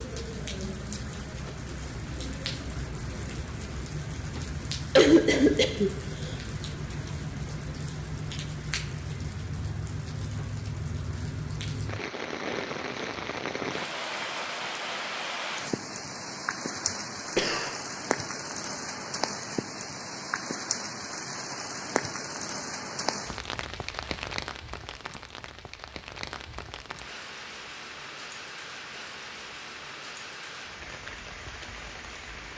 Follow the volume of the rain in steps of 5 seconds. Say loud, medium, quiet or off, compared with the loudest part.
loud, loud, loud, loud, loud, medium, medium.